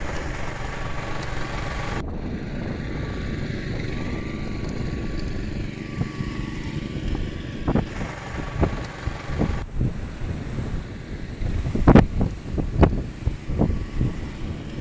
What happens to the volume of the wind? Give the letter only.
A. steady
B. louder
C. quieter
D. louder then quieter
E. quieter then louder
B.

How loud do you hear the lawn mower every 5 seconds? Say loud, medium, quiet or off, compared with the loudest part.
loud, loud, medium.